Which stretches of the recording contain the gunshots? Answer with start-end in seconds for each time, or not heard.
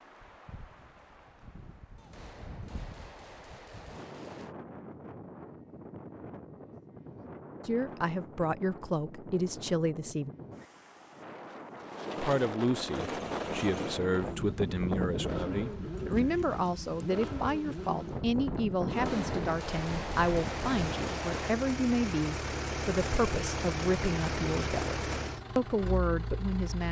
1.9-4.5, 18.9-21.6.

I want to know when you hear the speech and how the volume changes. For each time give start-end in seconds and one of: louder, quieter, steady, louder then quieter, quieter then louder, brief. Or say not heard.
7.7-10.3 brief
12.2-26.8 steady.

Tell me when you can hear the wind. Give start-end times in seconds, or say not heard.
0.0-20.9.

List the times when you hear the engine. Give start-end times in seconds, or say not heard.
12.8-26.8.